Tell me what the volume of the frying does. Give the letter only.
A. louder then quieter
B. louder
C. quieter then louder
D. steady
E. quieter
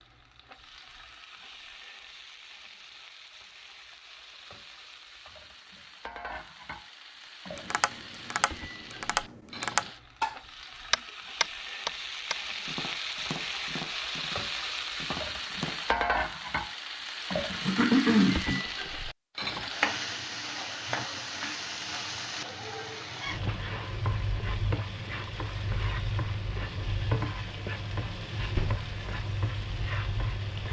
B.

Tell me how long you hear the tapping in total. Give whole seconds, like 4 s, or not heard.
8 s.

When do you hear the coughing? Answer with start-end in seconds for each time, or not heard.
17.6-18.6.